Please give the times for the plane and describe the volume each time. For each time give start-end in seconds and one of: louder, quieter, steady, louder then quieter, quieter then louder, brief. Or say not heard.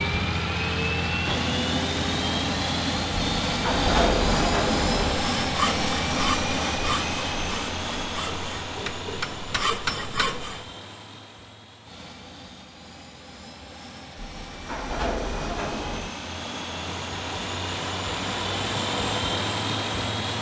0.0-20.3 quieter then louder.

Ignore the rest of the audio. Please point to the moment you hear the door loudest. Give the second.
4 s.